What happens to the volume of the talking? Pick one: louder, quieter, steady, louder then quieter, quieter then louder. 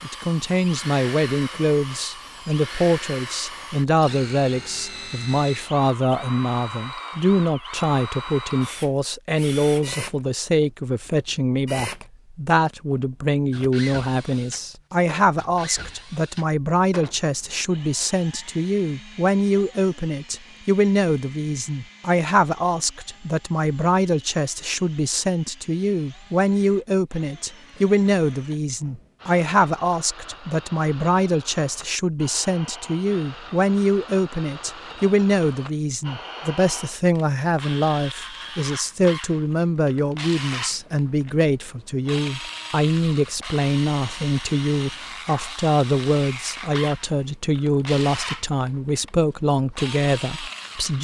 steady.